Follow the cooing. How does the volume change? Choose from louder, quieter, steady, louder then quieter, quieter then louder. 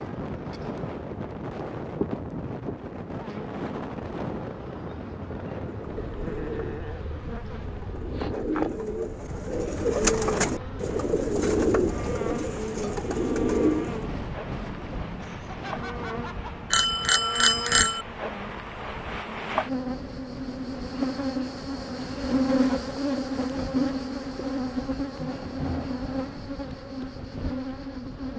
louder.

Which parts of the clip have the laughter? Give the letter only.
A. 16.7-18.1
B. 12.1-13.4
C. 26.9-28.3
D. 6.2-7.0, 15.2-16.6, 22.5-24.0
D.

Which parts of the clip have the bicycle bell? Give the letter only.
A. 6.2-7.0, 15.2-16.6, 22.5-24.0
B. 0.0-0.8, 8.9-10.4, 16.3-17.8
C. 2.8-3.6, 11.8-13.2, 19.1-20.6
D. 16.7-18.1
D.